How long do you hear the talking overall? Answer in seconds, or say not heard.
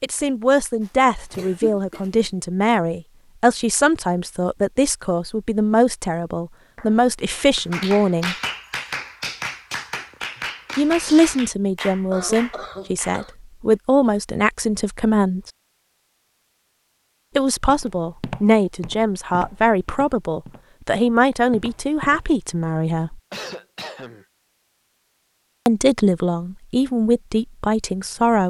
22 s.